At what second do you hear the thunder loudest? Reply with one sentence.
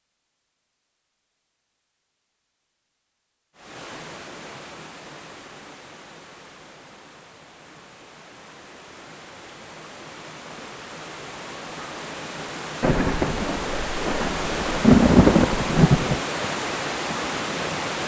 The loudest moment of the thunder is at 15 seconds.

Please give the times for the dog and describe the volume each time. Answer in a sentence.
The dog can't be heard in this clip.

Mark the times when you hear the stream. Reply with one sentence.
The stream can be heard from 3.5 to 18.0 s.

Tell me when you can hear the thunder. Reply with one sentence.
The thunder can be heard from 12.8 to 16.2 s.